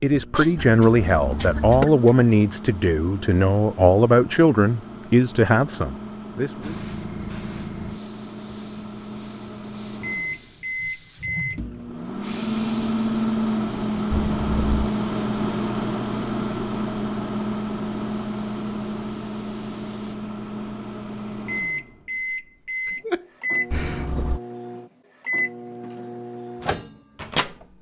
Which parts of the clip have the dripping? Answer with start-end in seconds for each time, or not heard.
not heard.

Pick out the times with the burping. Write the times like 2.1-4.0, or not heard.
0.6-1.9, 14.1-14.9, 23.7-24.4.